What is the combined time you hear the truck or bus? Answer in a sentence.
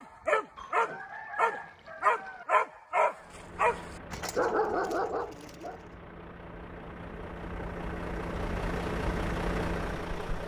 The truck or bus can be heard for 7 seconds in total.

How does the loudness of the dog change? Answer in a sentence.
The volume of the dog stays about the same.